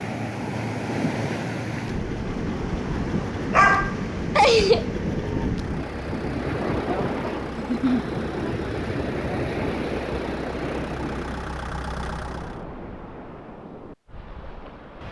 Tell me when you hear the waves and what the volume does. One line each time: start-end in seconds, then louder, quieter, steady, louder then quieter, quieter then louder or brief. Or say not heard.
0.0-15.0 quieter.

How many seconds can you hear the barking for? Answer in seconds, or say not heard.
2 s.